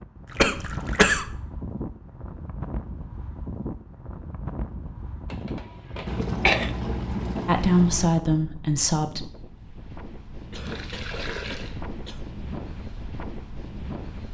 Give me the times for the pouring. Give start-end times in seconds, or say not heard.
0.2-1.1, 6.0-8.1, 10.7-11.8.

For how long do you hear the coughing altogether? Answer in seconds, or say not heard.
4 s.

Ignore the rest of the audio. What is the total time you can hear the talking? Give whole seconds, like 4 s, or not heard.
2 s.